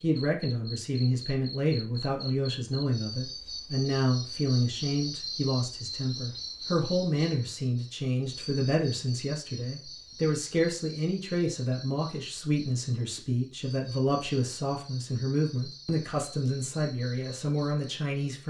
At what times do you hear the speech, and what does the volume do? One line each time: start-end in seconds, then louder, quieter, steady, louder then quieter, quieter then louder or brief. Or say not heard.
0.0-18.4 steady.